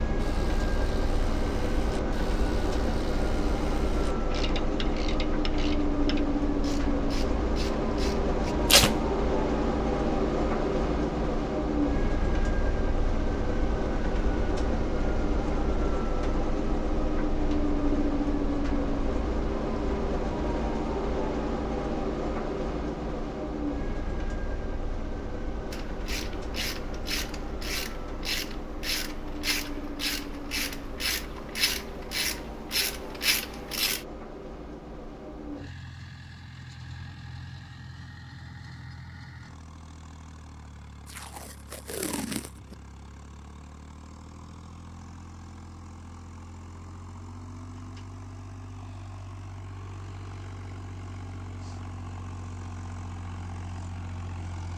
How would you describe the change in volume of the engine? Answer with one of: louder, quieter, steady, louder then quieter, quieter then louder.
quieter.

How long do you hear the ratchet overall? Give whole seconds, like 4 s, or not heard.
17 s.